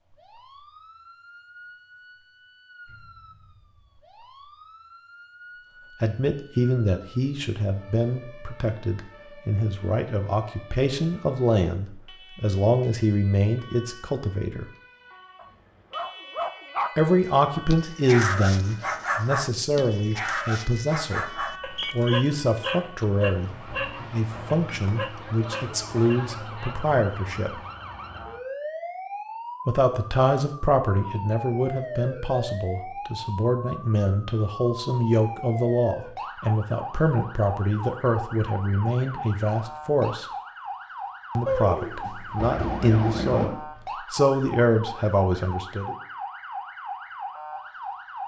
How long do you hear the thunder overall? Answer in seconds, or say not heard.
2 s.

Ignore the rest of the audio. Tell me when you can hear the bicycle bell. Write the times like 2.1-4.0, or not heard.
not heard.